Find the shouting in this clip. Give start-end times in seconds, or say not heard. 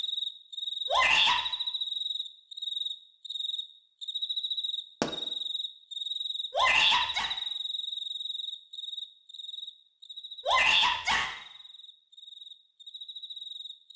0.8-1.4, 6.5-7.3, 10.4-11.3.